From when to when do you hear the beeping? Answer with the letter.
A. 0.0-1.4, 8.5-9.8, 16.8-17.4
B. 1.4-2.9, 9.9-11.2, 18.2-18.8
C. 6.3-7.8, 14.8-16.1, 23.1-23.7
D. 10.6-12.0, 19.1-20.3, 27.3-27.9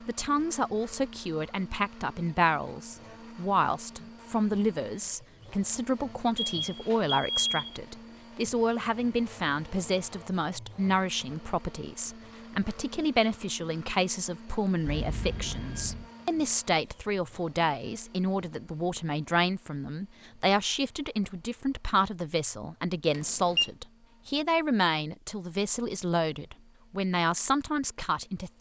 C.